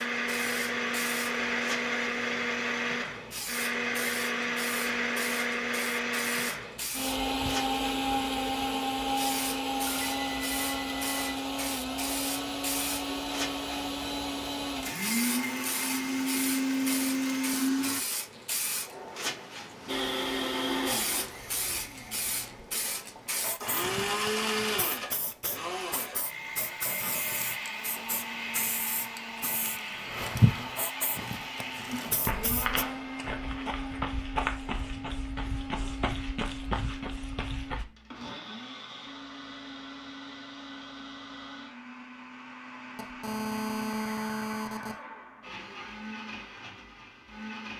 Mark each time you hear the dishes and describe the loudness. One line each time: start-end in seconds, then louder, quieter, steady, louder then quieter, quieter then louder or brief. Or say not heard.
not heard.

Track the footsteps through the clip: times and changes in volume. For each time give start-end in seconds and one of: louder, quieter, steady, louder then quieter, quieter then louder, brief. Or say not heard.
32.0-37.9 steady.